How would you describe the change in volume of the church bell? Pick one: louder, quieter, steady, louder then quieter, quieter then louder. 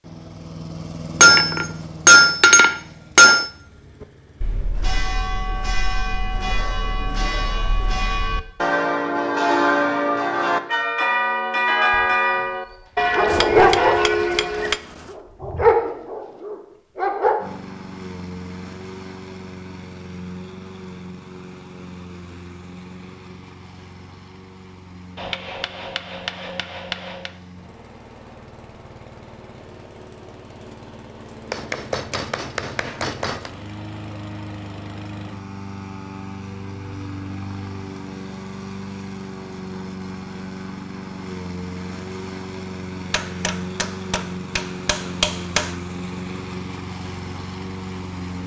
louder.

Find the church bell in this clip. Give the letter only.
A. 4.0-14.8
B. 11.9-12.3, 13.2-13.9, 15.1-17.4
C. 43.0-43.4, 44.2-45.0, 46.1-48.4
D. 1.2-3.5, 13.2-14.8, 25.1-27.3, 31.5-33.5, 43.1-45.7
A.